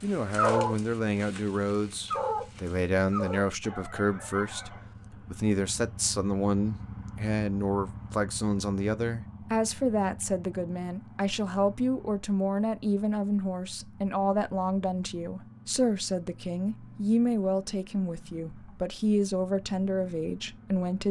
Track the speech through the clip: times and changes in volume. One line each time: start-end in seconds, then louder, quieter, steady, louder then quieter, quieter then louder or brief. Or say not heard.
0.0-21.0 steady.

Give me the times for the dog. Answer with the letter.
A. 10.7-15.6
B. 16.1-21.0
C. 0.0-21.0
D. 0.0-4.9
D.